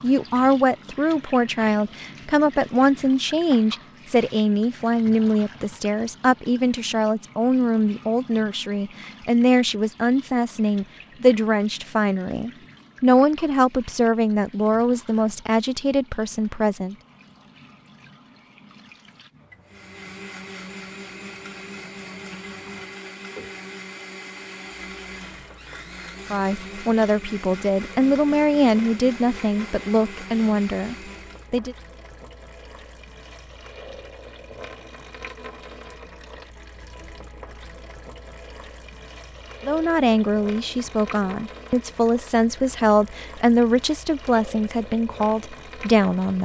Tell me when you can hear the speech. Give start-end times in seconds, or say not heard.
0.0-16.9, 26.3-31.8, 39.6-46.3.